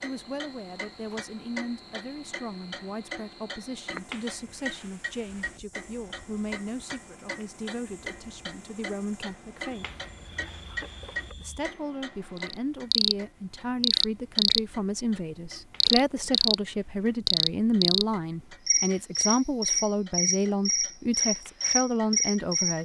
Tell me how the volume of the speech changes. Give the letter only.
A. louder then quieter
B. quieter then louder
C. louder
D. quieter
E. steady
C.